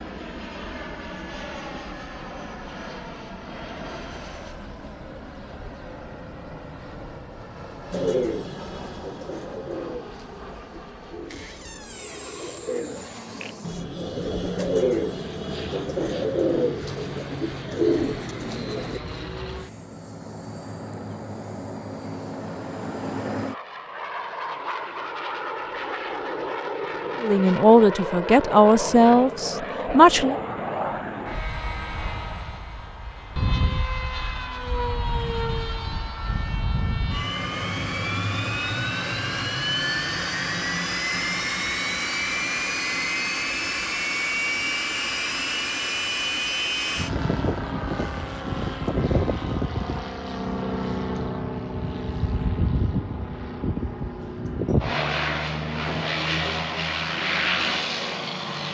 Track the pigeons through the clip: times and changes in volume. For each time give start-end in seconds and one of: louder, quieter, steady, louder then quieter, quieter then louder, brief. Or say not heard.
7.9-19.0 quieter then louder.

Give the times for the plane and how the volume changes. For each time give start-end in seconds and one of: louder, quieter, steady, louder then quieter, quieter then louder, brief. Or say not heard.
0.0-58.6 louder.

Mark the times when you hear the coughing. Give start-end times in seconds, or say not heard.
not heard.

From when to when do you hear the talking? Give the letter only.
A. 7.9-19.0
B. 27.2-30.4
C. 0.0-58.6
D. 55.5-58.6
B.